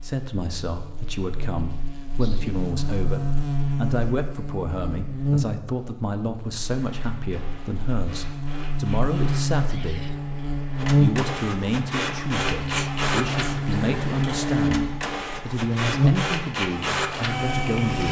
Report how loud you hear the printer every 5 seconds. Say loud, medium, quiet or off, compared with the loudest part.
off, quiet, loud, loud.